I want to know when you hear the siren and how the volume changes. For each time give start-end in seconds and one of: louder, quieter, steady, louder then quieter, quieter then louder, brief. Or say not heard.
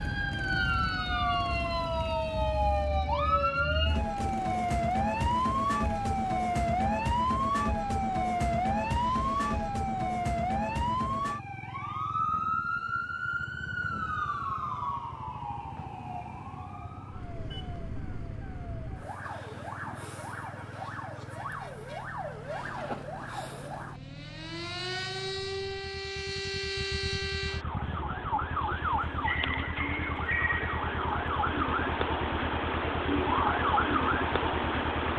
0.0-35.1 quieter then louder.